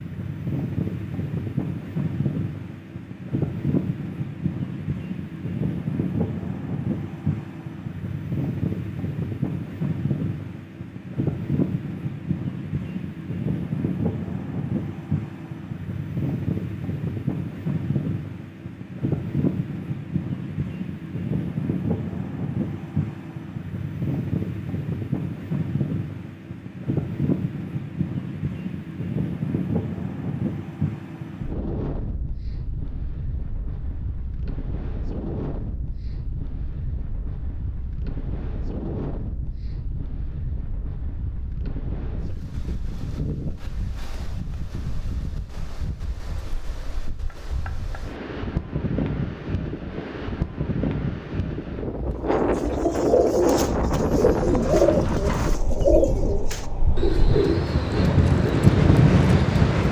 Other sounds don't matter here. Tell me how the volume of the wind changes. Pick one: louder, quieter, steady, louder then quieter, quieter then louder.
quieter then louder.